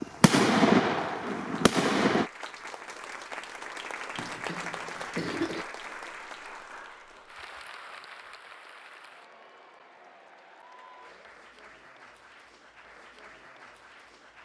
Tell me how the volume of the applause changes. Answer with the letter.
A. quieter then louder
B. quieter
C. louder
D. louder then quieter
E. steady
B.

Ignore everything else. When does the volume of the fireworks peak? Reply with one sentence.
The volume of the fireworks peaks at 1 second.